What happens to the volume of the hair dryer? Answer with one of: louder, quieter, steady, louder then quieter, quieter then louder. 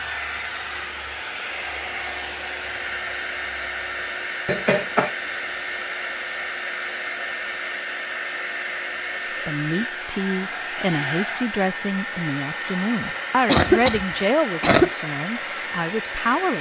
steady.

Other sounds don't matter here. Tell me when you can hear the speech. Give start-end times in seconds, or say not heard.
9.4-16.5.